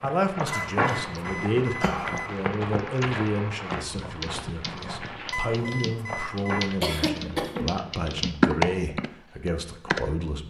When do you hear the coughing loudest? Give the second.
7 s.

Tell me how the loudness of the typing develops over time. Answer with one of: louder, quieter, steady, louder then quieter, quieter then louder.
louder.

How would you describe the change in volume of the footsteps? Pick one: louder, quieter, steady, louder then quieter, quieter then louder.
quieter.